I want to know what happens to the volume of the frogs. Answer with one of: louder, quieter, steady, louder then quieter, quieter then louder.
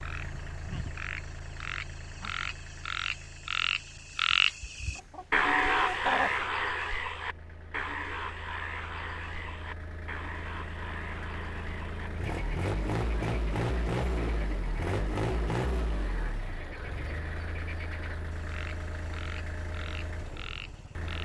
louder then quieter.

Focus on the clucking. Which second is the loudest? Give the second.
6 s.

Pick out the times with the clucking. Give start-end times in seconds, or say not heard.
4.6-6.4.